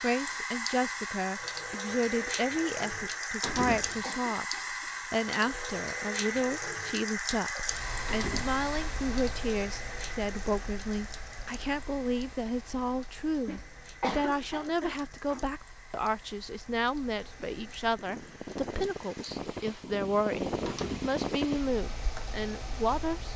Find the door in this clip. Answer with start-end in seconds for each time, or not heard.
3.4-4.0, 8.1-8.6, 20.6-21.2.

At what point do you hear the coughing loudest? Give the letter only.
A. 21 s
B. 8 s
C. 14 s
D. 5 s
C.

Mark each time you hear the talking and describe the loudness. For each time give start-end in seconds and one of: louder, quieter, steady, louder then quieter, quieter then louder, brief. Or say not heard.
0.0-23.3 steady.